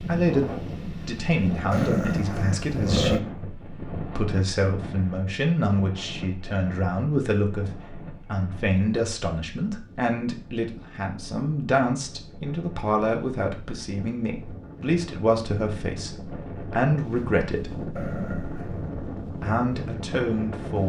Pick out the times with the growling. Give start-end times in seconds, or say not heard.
1.7-3.2, 17.9-18.9.